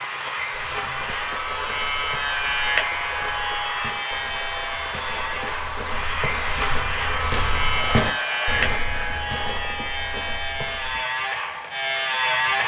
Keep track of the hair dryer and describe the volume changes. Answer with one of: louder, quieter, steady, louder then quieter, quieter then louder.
quieter.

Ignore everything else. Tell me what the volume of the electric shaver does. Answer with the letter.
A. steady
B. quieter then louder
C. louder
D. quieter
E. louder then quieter
A.